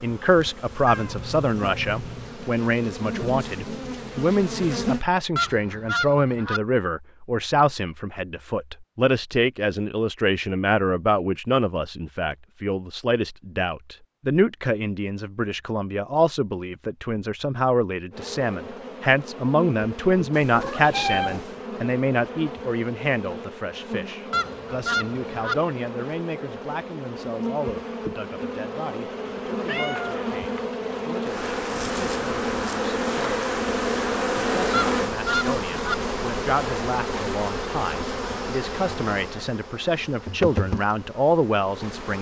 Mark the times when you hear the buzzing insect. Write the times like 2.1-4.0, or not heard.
0.0-5.0, 18.1-42.1.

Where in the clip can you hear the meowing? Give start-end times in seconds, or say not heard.
0.8-2.3, 20.3-21.6, 29.2-30.7.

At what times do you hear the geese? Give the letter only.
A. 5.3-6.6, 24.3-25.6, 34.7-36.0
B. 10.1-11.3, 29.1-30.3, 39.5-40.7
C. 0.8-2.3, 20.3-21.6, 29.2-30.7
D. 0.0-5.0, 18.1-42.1
A.